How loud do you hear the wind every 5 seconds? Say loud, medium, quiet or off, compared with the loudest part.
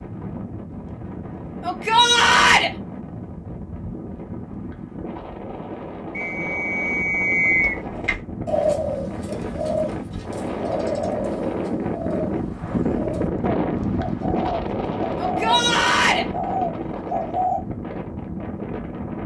medium, medium, loud, loud.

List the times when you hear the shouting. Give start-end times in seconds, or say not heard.
1.6-2.7, 15.2-16.2.